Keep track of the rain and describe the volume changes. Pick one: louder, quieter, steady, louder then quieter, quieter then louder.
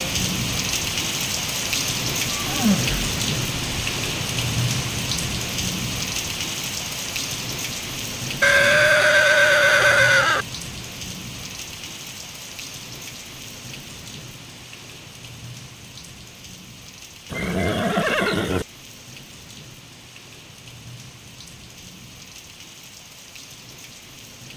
quieter.